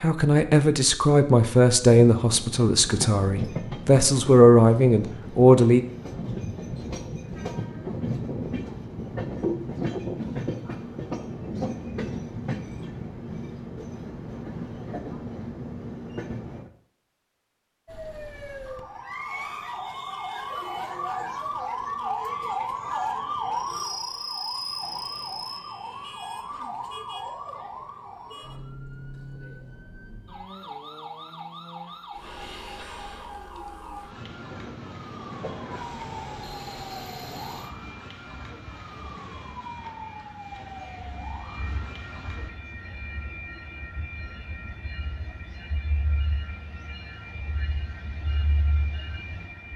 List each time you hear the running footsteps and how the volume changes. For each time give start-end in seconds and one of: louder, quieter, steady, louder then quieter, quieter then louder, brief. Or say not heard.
not heard.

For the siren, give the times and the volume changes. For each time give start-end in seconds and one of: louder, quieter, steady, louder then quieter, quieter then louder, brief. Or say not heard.
17.9-42.5 quieter.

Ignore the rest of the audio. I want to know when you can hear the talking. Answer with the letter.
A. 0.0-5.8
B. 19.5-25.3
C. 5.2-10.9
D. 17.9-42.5
A.